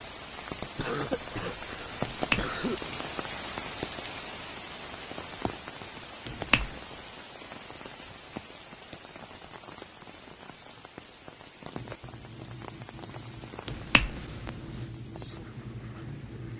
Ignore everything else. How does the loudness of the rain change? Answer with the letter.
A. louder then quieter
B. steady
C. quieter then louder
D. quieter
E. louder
D.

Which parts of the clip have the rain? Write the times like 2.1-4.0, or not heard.
0.0-16.5.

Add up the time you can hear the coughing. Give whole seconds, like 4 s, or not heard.
2 s.